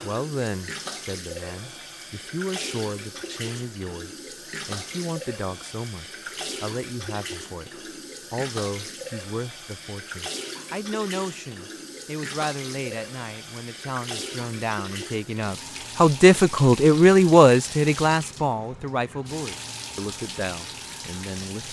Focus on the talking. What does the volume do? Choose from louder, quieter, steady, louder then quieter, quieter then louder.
louder.